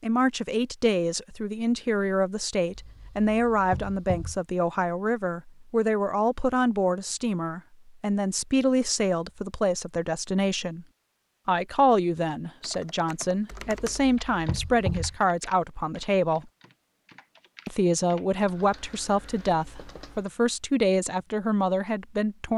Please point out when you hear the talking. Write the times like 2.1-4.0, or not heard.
0.0-10.8, 11.4-16.5, 17.6-22.5.